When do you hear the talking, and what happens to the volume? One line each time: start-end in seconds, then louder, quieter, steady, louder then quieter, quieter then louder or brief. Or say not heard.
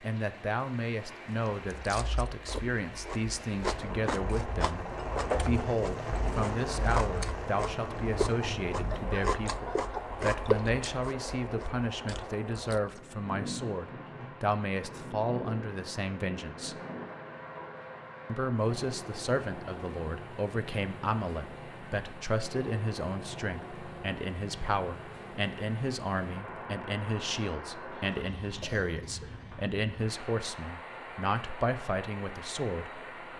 0.0-16.8 steady
18.2-33.0 steady.